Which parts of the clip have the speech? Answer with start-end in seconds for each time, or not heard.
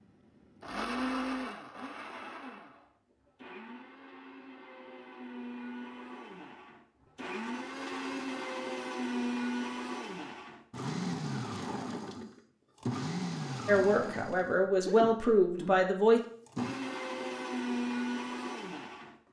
13.7-16.2.